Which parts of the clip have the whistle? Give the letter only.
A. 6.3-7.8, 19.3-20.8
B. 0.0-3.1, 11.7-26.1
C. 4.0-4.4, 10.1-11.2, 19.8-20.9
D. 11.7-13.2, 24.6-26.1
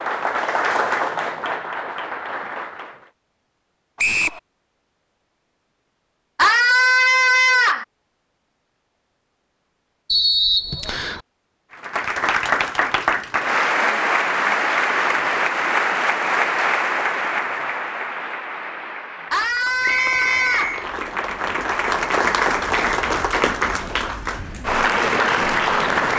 C.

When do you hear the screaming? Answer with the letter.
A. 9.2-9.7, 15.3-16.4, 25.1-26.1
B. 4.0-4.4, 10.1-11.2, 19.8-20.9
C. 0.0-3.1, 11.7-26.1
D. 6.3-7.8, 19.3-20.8
D.